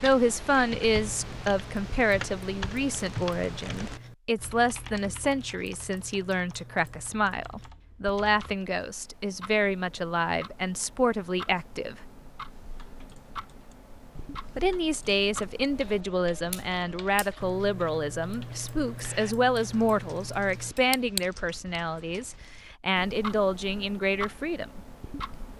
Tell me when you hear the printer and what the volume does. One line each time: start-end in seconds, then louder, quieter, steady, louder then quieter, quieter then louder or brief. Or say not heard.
not heard.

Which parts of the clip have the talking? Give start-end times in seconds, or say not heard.
0.0-11.9, 14.6-24.8.